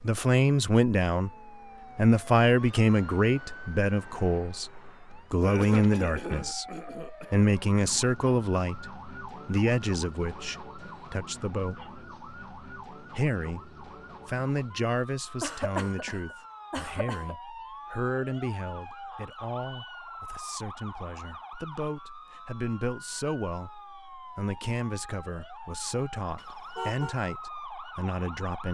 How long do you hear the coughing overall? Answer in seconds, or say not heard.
4 s.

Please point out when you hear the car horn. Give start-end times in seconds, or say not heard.
26.4-27.1.